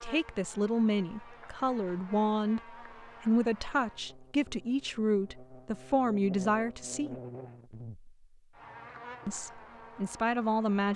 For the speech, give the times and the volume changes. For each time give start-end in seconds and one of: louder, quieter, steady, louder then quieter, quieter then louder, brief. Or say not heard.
0.0-7.2 steady
9.2-10.9 brief.